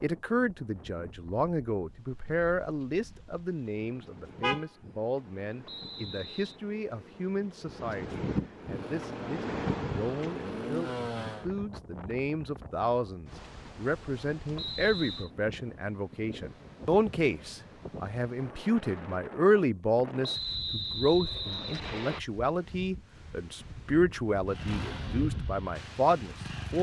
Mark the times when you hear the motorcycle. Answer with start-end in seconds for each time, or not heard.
8.6-11.5, 24.4-26.7.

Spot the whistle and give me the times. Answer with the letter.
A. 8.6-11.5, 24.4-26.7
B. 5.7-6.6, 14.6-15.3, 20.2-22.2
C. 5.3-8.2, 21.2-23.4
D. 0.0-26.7
B.